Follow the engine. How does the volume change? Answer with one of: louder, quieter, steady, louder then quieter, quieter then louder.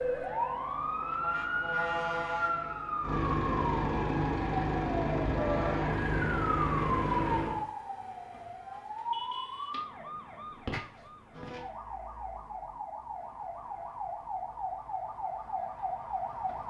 louder.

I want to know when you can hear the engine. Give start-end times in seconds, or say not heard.
0.0-7.7.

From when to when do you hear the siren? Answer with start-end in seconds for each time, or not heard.
0.0-16.6.